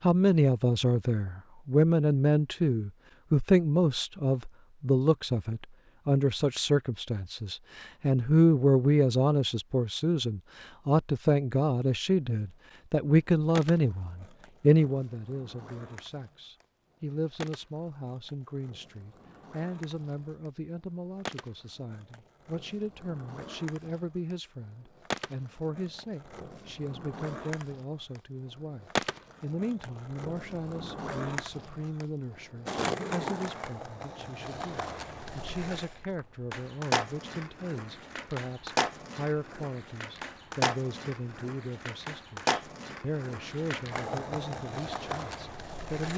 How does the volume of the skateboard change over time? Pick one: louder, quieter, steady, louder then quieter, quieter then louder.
louder.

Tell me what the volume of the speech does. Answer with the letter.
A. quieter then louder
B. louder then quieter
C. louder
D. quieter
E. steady
D.